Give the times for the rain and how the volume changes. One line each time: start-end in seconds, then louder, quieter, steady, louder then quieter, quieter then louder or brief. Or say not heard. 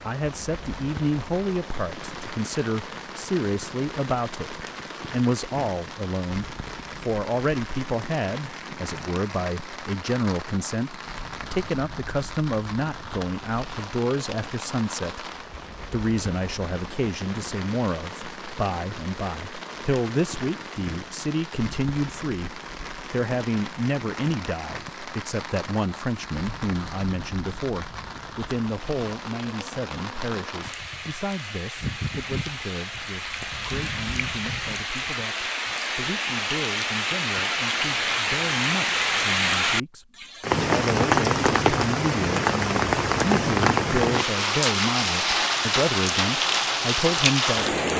0.0-47.9 louder.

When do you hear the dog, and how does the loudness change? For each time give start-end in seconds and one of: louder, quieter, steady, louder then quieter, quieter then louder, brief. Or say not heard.
not heard.